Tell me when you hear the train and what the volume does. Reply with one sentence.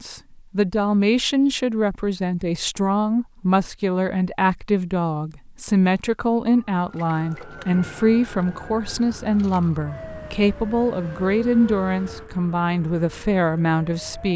The train can't be heard in this clip.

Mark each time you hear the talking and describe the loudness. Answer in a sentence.
The talking can be heard from 0.0 to 14.3 s, at a steady volume.